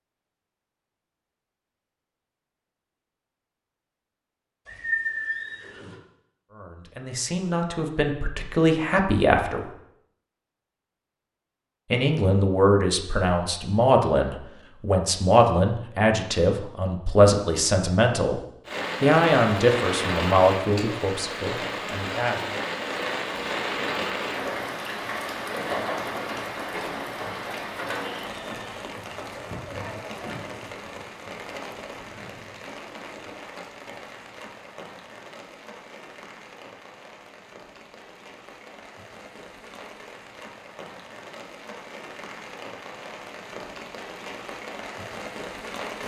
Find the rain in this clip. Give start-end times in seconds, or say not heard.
18.6-46.0.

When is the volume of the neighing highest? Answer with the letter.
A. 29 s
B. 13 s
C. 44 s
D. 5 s
D.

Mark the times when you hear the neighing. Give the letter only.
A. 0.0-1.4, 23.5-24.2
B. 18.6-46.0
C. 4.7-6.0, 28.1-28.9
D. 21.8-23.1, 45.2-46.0
C.